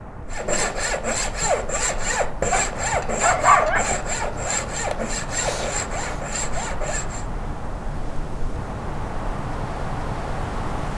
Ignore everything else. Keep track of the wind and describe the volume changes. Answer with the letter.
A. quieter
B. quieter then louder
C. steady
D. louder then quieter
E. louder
E.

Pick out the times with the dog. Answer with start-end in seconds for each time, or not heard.
2.9-3.9.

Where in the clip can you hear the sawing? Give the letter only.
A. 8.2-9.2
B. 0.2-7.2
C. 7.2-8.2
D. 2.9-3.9
B.